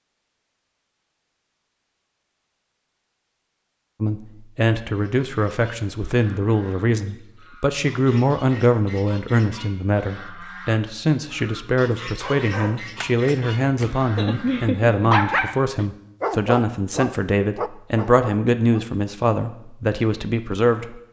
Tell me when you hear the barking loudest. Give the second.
15 s.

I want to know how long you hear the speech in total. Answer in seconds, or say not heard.
17 s.